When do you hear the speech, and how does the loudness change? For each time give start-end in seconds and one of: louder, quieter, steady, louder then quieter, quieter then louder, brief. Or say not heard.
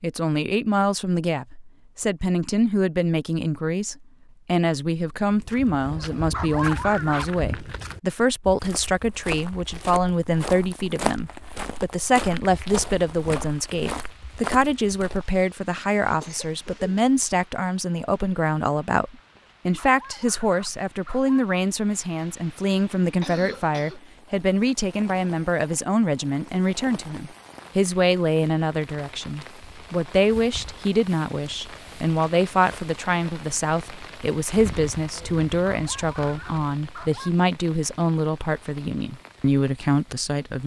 0.0-40.6 steady.